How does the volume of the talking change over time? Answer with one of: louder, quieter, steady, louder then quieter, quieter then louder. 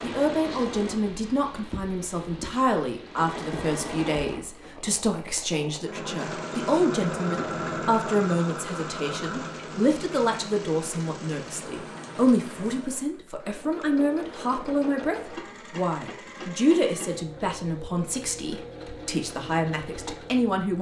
steady.